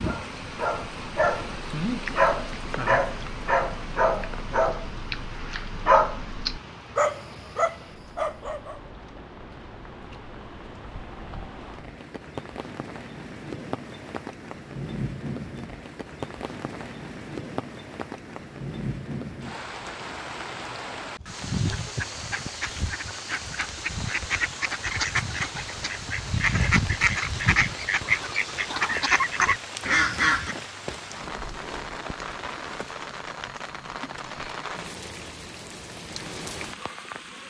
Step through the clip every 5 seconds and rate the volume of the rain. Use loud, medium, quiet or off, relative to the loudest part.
loud, medium, loud, loud, loud, loud, loud, loud.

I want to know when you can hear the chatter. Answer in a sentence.
The chatter can't be heard in this clip.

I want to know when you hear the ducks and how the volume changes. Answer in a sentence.
The ducks can be heard from 21.2 to 30.6 s, getting louder.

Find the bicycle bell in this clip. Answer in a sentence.
You can't hear the bicycle bell here.